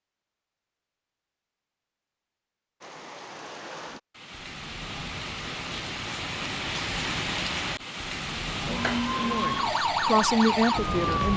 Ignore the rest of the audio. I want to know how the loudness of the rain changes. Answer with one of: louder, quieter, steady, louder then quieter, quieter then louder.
louder then quieter.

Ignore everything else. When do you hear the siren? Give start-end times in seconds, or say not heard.
8.6-11.3.